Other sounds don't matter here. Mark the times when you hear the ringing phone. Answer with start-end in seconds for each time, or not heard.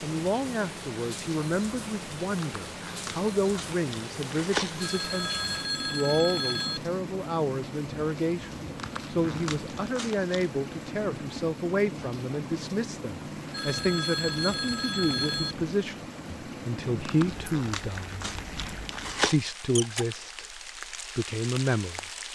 4.8-6.8, 13.5-15.6.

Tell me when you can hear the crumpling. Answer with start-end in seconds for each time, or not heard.
2.4-4.9, 8.8-10.5, 17.1-19.4.